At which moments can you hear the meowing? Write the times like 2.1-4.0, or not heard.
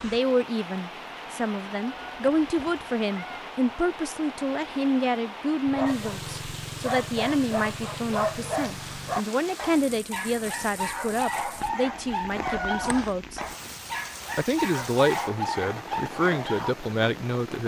1.8-3.5, 12.4-13.2.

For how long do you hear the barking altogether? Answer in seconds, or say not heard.
11 s.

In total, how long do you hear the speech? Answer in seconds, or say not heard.
17 s.